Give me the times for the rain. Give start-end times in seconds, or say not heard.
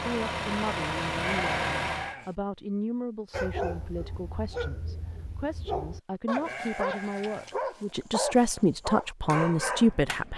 not heard.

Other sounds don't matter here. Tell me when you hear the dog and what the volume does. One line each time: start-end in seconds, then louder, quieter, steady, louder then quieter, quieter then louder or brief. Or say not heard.
3.3-10.3 louder.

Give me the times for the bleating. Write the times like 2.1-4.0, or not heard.
1.1-2.3, 6.3-7.5.